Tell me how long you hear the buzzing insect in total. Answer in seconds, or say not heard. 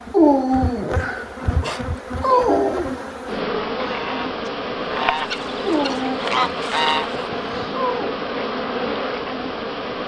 10 s.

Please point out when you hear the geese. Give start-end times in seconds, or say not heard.
3.8-7.7.